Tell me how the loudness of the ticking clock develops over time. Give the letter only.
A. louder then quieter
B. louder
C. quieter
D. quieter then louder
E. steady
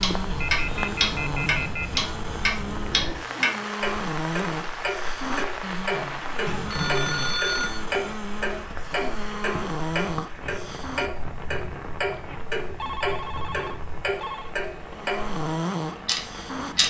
C.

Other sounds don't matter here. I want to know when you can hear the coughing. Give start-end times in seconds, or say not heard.
6.5-7.0.